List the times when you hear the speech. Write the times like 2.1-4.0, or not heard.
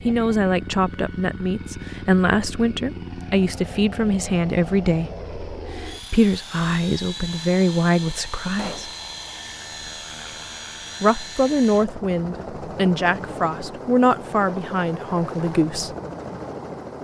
0.1-8.9, 11.0-15.9.